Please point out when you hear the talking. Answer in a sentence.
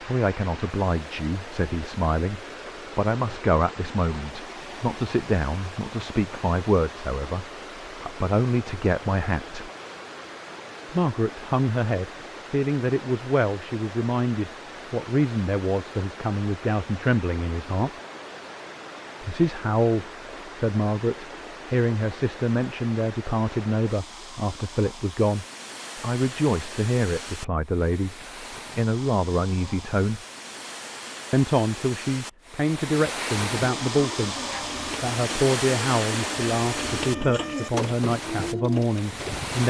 The talking can be heard from 0.1 to 9.7 s, from 10.9 to 17.9 s, from 19.2 to 30.2 s and from 31.3 to 39.6 s.